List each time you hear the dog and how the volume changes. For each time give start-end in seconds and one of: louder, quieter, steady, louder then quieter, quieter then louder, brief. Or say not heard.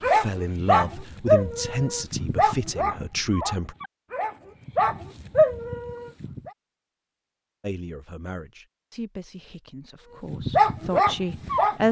0.0-6.5 quieter then louder
10.3-11.8 brief.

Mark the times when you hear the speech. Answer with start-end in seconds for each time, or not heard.
0.0-3.8, 7.6-11.8.